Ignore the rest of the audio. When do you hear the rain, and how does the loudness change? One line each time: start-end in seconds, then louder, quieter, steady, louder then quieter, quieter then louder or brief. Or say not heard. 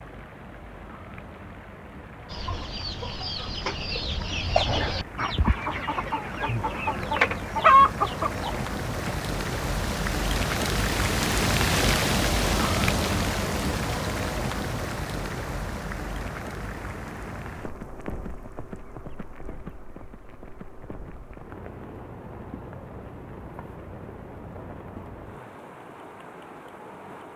0.0-27.3 louder then quieter.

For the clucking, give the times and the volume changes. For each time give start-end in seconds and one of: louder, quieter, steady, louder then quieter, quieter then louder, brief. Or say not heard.
2.3-9.2 louder.